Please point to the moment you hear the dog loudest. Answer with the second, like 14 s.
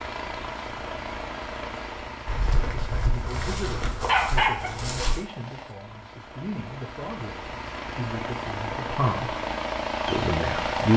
4 s.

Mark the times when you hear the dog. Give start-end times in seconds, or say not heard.
2.2-5.2.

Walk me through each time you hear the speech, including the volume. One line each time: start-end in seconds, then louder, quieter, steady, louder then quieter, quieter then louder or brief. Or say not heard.
2.7-9.3 steady
10.1-10.9 brief.